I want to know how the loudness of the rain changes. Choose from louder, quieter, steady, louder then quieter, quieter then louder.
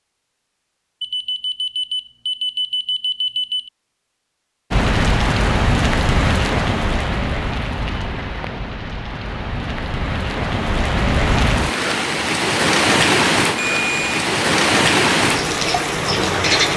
quieter then louder.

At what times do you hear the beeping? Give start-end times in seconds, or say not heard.
1.0-3.7, 13.6-14.1.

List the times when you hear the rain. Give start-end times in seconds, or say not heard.
4.7-16.7.